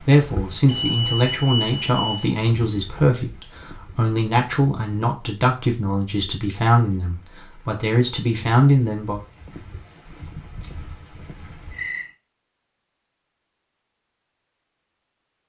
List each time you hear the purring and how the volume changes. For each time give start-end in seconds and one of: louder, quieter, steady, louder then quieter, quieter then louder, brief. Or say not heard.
not heard.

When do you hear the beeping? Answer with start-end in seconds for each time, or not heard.
0.7-2.2.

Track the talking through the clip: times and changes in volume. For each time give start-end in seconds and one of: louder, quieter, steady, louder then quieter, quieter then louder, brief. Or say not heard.
0.0-9.2 steady.